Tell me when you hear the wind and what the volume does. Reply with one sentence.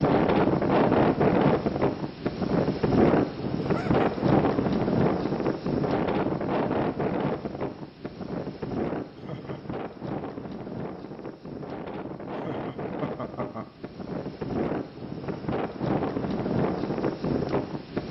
You can hear the wind from 0.0 to 18.0 s, getting quieter then louder.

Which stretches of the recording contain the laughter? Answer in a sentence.
You can hear the laughter from 3.5 to 4.1 s, from 9.2 to 9.8 s and from 12.4 to 13.7 s.